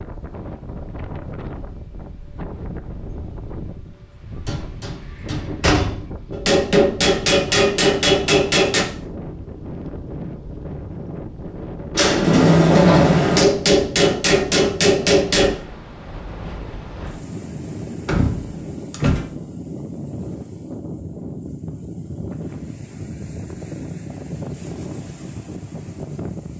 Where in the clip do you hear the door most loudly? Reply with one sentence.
The loudest moment of the door is at 13 seconds.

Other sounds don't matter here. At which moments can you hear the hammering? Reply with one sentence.
You can hear the hammering from 6.3 to 8.8 s and from 13.3 to 15.6 s.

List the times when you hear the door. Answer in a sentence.
The door can be heard from 4.5 to 6.1 s, from 11.9 to 13.4 s and from 18.1 to 19.3 s.